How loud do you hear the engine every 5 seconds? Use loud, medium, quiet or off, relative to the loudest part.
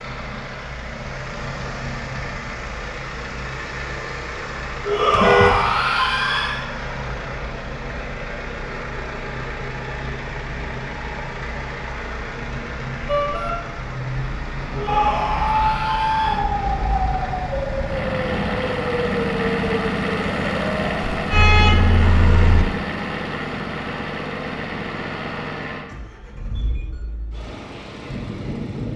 medium, medium, medium, loud, loud, medium.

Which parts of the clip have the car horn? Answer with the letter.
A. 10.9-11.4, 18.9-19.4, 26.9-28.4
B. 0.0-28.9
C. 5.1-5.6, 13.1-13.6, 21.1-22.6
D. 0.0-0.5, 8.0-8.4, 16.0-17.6
C.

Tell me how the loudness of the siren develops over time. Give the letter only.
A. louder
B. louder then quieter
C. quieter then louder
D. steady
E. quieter
E.